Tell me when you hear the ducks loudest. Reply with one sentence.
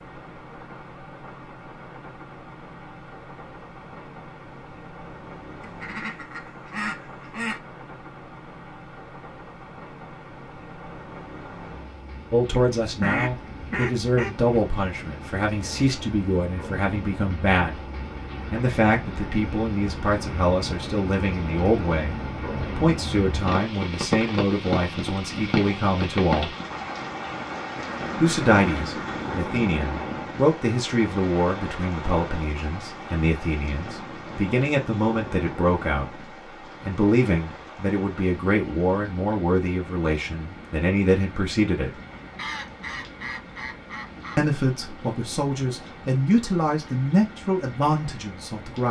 The volume of the ducks peaks at 13 seconds.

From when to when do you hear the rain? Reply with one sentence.
You can hear the rain from 0.0 to 48.8 s.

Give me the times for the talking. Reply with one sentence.
You can hear the talking from 12.3 to 17.8 s, from 18.5 to 26.5 s, from 28.1 to 36.2 s, from 36.8 to 41.9 s and from 44.4 to 48.8 s.